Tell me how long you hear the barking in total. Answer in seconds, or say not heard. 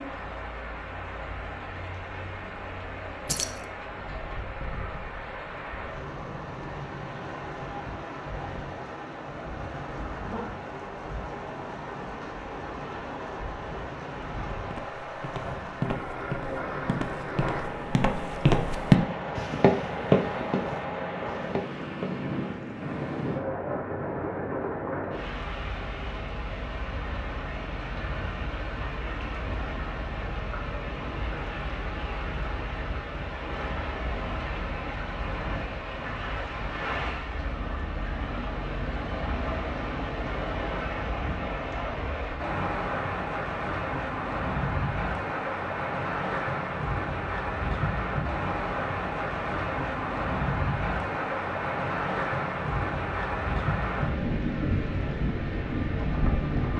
not heard.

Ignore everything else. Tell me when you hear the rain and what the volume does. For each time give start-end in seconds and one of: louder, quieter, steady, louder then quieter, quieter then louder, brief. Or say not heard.
0.0-56.7 louder.